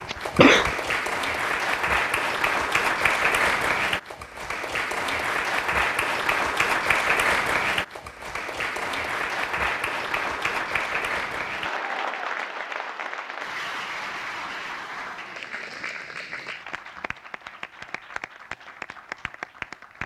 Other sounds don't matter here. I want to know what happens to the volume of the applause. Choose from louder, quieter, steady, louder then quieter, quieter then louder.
quieter.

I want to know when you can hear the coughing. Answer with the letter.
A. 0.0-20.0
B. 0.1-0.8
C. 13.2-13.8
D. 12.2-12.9
B.